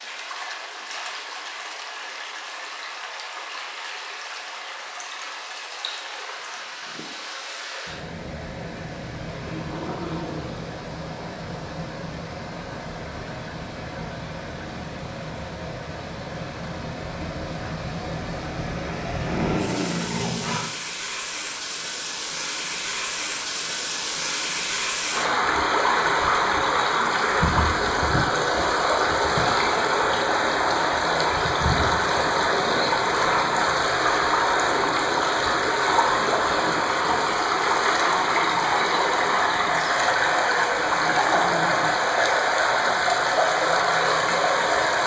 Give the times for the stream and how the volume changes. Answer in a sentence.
The stream can be heard from 0.0 to 45.0 s, getting louder.